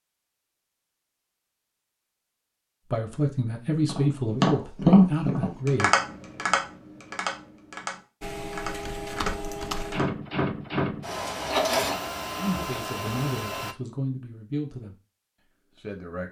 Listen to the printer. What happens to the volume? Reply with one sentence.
The loudness of the printer goes up, then down.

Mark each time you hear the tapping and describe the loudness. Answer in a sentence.
The tapping can be heard from 3.8 to 10.1 s, getting quieter.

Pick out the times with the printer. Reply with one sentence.
You can hear the printer from 8.2 to 13.8 s.